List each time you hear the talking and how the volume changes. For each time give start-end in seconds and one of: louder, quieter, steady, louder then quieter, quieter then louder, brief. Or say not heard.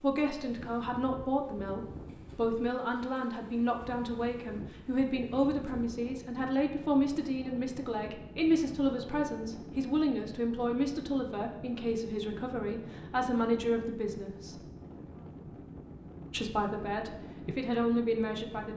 0.0-14.6 steady
16.3-18.7 brief.